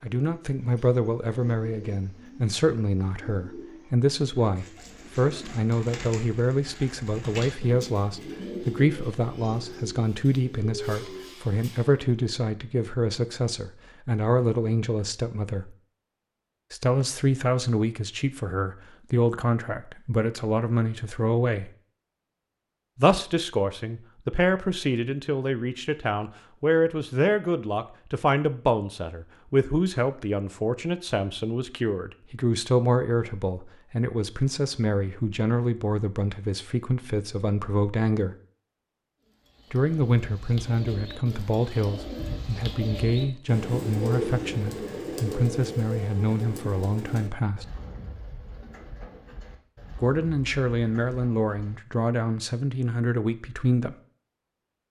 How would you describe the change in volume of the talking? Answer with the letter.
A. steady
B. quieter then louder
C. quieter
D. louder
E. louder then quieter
A.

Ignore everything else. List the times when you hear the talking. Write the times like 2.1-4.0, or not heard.
0.0-15.8, 16.7-21.7, 22.9-38.4, 39.7-47.6, 50.0-54.0.